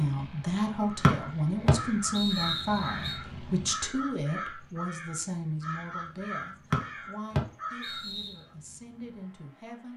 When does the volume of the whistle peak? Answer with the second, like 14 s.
1 s.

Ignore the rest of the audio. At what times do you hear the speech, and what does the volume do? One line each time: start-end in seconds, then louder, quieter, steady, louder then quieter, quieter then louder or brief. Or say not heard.
0.0-9.9 quieter.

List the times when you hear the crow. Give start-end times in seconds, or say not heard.
0.8-8.5.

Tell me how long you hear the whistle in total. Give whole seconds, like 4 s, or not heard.
4 s.